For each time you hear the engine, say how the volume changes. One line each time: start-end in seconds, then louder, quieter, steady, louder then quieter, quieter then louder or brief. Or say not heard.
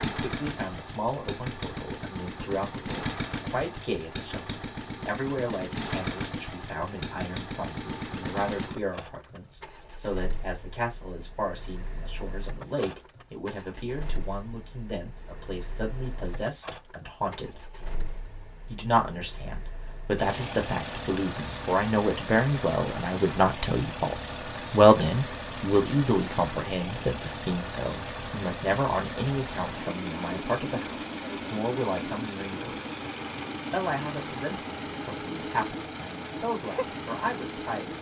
0.0-37.9 quieter then louder.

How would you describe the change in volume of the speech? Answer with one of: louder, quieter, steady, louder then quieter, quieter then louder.
louder then quieter.